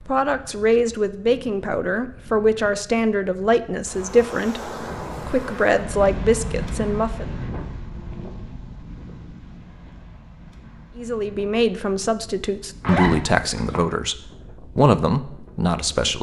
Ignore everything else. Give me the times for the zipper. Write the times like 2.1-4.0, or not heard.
12.8-13.8.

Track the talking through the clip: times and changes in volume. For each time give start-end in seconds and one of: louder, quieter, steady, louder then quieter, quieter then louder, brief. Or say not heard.
0.1-7.3 steady
10.9-16.1 steady.